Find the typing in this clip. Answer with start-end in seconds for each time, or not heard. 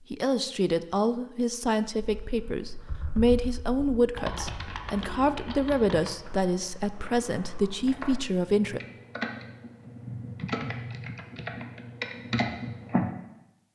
1.9-13.1.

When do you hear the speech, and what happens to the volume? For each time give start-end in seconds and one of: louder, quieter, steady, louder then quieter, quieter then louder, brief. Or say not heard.
0.1-8.8 steady.